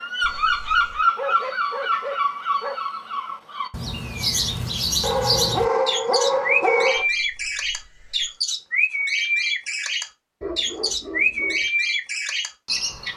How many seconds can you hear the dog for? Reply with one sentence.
The dog can be heard for 5 seconds in total.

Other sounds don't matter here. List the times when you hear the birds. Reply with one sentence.
You can hear the birds from 0.0 to 13.1 s.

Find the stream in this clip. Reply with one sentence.
You can't hear the stream here.